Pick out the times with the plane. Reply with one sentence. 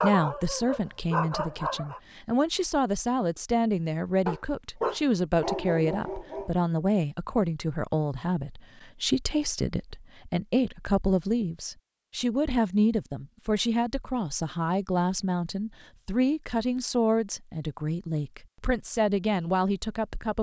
The plane can't be heard in this clip.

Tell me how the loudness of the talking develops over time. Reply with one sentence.
The volume of the talking stays about the same.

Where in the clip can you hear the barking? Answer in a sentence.
You can hear the barking from 0.0 to 2.0 s and from 4.2 to 6.7 s.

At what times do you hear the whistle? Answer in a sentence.
The whistle can't be heard in this clip.